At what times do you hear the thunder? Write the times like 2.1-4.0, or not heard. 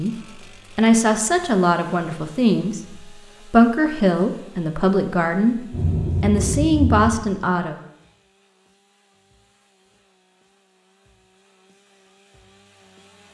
5.7-7.2.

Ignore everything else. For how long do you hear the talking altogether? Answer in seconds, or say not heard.
8 s.